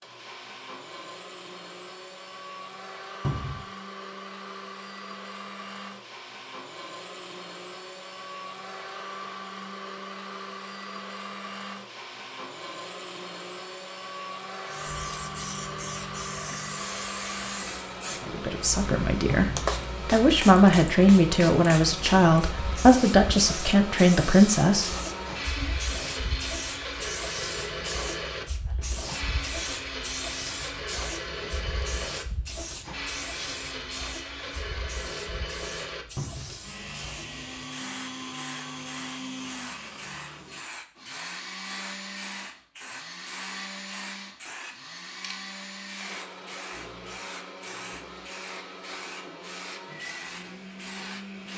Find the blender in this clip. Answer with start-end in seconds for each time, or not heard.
0.0-51.5.